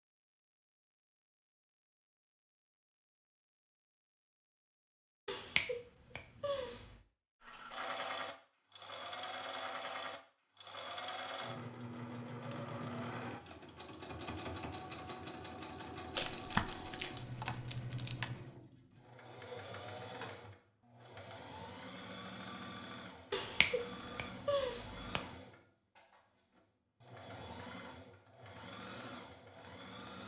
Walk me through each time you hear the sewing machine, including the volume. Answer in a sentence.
You can hear the sewing machine from 7.4 to 30.2 s, getting quieter.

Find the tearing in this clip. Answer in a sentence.
You can hear the tearing from 16.1 to 18.3 s.